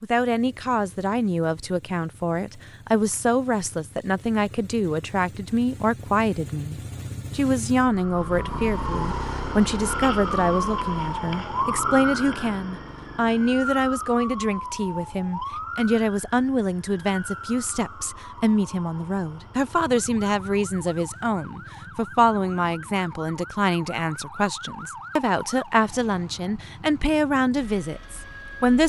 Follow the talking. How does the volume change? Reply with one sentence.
The volume of the talking stays about the same.